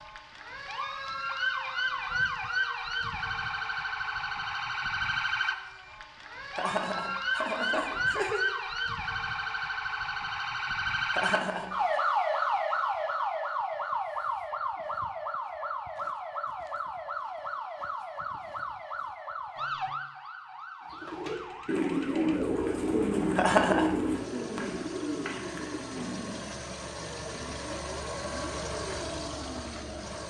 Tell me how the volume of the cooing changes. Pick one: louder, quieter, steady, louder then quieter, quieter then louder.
quieter.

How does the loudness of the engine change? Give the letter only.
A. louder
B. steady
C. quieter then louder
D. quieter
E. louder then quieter
A.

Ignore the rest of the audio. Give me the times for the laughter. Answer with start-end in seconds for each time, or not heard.
6.5-8.4, 11.1-12.0, 23.4-24.2.